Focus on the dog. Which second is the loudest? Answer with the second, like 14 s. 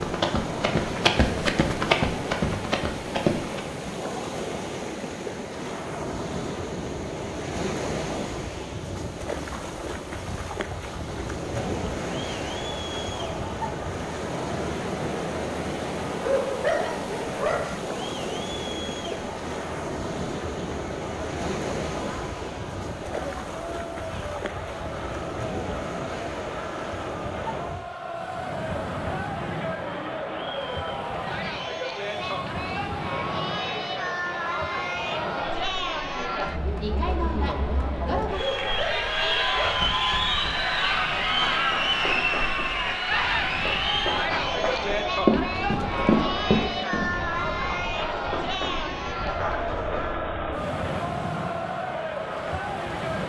17 s.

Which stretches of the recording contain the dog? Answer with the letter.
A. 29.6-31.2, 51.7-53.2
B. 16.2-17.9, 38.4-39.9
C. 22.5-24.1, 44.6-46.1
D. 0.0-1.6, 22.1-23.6
B.